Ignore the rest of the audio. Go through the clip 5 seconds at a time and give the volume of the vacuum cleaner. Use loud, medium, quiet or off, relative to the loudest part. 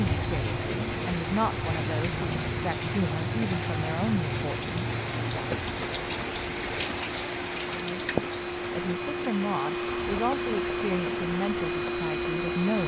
medium, medium, loud.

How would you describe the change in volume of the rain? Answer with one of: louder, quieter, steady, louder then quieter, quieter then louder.
quieter.